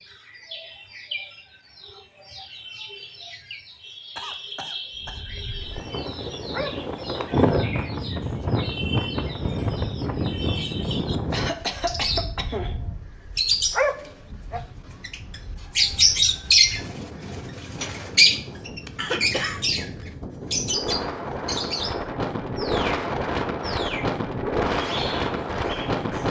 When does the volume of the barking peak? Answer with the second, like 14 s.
14 s.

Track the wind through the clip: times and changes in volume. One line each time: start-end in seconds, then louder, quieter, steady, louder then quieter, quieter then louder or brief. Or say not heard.
5.0-26.2 quieter then louder.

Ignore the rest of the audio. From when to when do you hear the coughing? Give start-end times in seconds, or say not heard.
4.2-5.2, 11.3-12.8, 18.9-19.6.